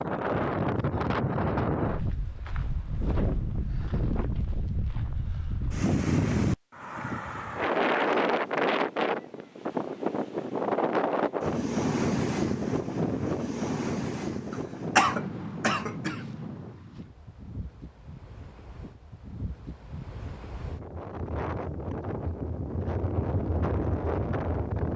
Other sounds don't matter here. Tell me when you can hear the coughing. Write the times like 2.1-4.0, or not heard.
14.5-16.2.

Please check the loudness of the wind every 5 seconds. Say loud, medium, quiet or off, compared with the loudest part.
loud, loud, loud, quiet, medium.